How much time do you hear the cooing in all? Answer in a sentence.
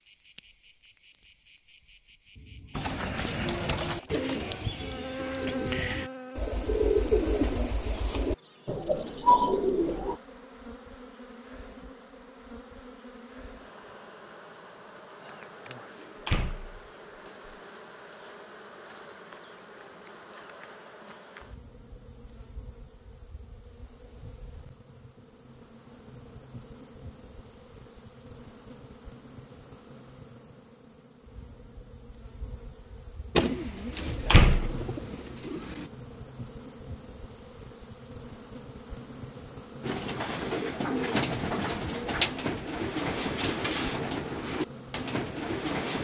You can hear the cooing for 16 seconds altogether.